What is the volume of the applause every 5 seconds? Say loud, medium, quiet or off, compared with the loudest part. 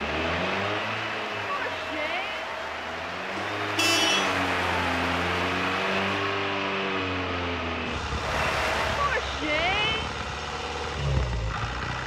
loud, loud, off.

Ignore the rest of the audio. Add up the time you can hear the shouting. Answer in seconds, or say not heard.
2 s.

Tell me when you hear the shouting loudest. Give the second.
10 s.